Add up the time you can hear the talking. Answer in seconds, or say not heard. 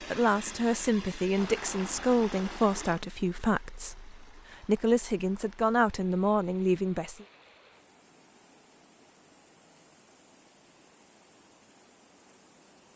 7 s.